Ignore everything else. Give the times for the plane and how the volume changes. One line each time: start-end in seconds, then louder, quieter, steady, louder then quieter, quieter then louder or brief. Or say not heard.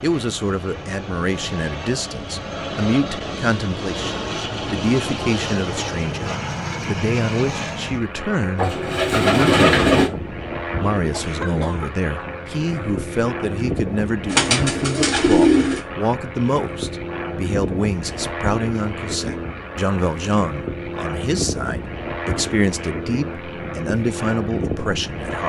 0.0-25.4 steady.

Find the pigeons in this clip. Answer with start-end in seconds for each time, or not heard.
8.6-10.1, 14.2-15.8.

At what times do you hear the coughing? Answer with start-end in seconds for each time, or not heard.
11.1-11.9.